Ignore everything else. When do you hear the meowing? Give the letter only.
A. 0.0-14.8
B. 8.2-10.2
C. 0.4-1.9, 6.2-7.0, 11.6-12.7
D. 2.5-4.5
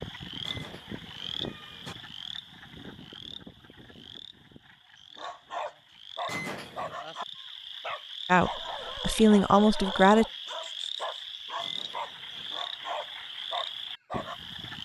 C.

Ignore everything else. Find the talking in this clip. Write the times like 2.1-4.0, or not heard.
8.2-10.2.